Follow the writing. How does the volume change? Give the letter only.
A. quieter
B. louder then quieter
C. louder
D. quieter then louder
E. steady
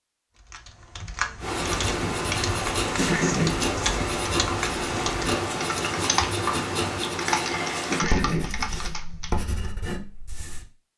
A.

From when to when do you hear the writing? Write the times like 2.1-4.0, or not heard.
1.4-10.7.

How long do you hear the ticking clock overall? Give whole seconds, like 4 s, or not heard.
not heard.